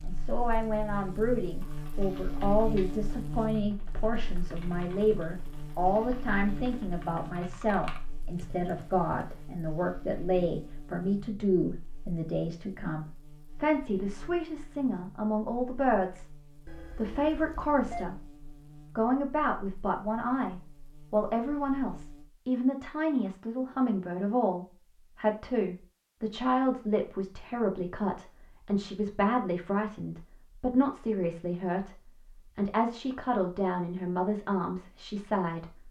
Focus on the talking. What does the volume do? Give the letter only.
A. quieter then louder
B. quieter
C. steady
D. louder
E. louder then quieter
C.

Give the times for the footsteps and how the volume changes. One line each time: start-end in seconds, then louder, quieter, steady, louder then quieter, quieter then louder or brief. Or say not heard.
not heard.